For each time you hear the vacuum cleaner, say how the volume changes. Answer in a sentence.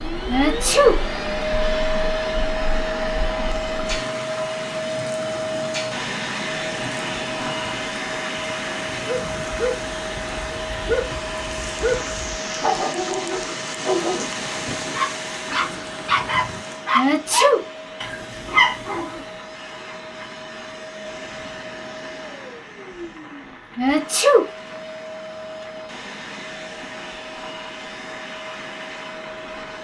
The vacuum cleaner can be heard from 0.0 to 29.7 s, getting quieter.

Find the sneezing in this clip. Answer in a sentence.
You can hear the sneezing from 0.2 to 0.9 s, from 16.9 to 17.6 s and from 23.8 to 24.4 s.